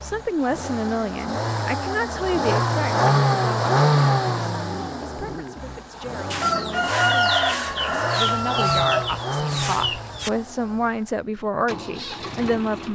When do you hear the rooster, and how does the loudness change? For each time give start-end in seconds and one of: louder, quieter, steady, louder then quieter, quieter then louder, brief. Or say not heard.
6.3-10.3 quieter.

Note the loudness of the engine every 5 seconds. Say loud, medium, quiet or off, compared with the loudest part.
loud, medium, quiet.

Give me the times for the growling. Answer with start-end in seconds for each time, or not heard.
4.2-7.0.